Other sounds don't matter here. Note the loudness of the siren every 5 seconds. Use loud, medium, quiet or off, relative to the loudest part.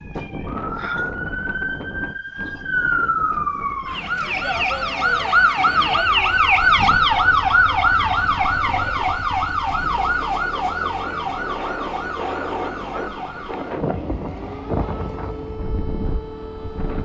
medium, loud, medium, quiet.